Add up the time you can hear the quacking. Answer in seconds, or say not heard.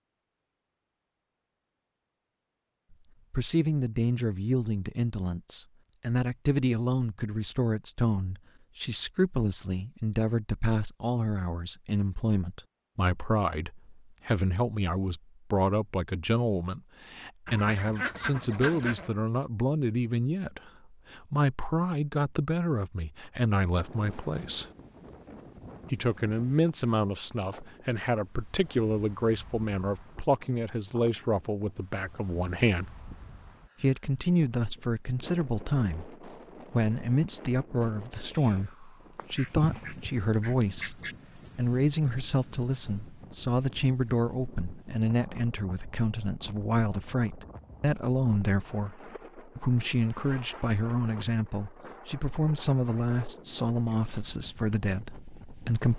4 s.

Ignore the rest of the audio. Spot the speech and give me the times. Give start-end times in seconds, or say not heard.
3.3-24.6, 25.9-32.9, 33.8-55.9.